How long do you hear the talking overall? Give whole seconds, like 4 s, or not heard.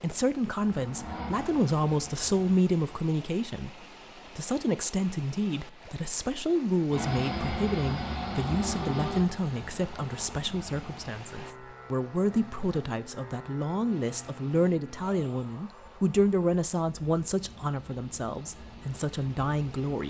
20 s.